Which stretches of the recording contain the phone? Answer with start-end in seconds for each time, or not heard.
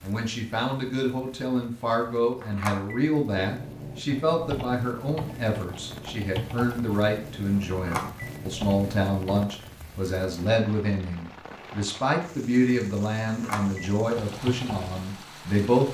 2.4-3.0, 7.7-8.3, 13.2-13.8.